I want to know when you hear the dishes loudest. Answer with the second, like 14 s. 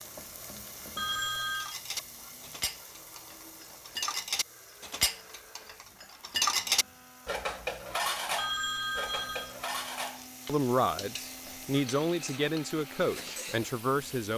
7 s.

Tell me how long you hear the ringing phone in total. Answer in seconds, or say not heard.
2 s.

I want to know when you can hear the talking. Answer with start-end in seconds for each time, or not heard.
10.4-14.3.